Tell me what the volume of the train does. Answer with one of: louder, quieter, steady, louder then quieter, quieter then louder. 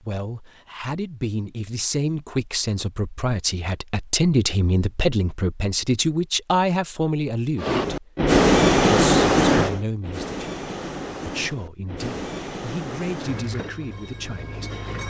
quieter.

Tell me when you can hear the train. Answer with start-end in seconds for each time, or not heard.
7.5-15.0.